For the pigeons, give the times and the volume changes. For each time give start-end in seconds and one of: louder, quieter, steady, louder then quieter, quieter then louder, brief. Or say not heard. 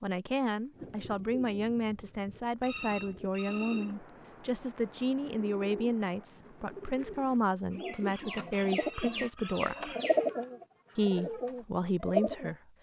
0.7-12.6 louder.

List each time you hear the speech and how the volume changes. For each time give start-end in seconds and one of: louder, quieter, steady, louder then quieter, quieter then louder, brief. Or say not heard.
0.0-9.9 steady
10.9-12.6 brief.